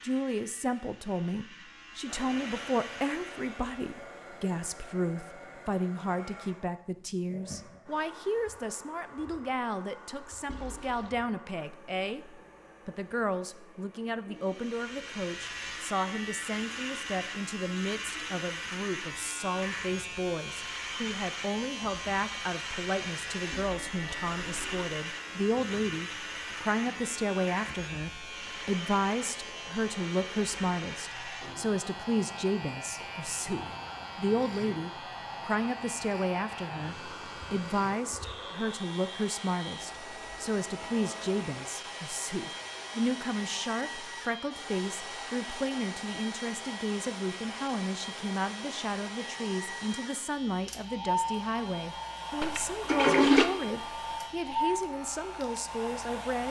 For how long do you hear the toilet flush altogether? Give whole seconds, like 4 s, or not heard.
3 s.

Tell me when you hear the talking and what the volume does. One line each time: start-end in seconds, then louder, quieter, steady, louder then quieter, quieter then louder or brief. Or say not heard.
0.0-56.4 steady.